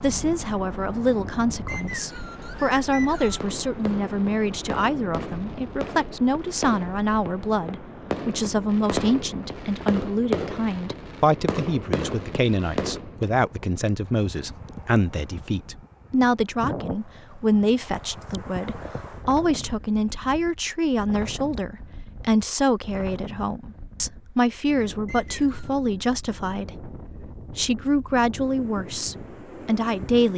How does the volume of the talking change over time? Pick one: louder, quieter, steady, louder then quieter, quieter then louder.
steady.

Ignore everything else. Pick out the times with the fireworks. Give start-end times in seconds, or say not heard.
3.2-13.3.